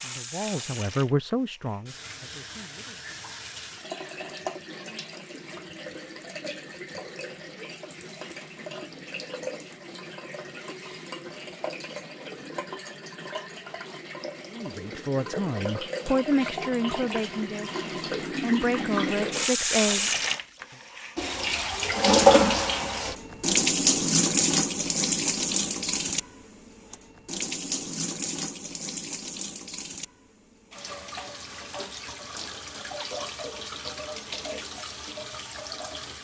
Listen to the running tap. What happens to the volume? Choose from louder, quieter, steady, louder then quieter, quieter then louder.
louder then quieter.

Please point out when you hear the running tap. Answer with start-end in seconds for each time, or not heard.
0.0-36.2.